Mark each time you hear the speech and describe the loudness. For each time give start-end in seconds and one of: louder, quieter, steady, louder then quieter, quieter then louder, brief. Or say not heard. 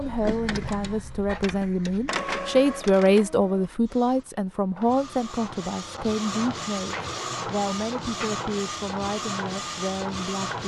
0.0-10.6 louder then quieter.